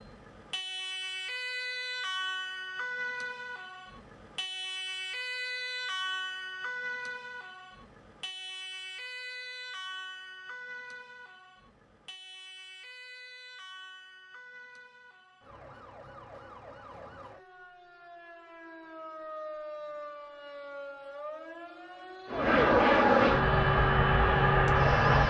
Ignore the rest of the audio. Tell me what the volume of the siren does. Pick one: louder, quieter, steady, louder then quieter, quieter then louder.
quieter then louder.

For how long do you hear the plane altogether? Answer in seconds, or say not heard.
3 s.